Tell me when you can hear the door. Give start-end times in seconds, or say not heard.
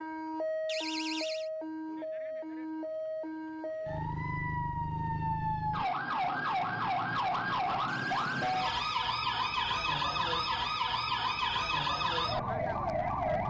0.7-1.5, 7.8-9.0.